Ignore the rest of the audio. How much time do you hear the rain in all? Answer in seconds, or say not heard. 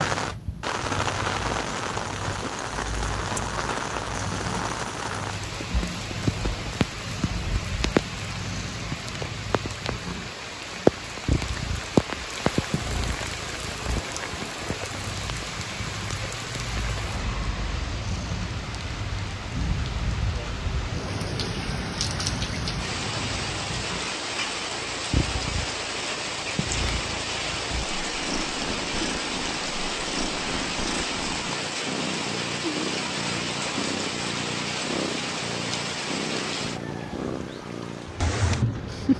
39 s.